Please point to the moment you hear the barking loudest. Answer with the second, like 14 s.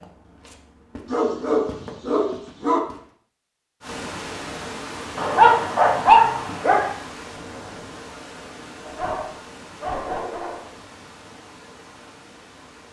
6 s.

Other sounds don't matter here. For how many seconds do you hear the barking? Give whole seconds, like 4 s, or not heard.
5 s.